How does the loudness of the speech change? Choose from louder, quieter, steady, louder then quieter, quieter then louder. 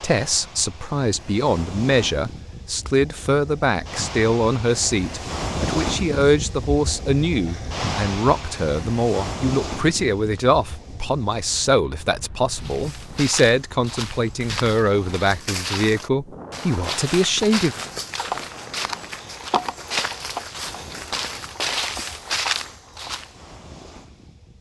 steady.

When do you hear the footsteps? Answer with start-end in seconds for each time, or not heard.
12.5-23.3.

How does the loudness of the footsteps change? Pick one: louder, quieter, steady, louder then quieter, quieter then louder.
louder.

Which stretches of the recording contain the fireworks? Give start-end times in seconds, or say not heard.
not heard.